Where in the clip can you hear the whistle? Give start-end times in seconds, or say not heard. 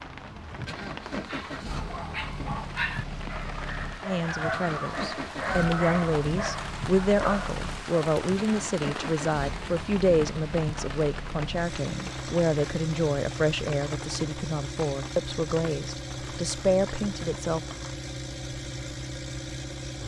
not heard.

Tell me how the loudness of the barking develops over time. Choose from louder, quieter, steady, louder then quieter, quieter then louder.
louder then quieter.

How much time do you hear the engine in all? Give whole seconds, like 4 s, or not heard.
20 s.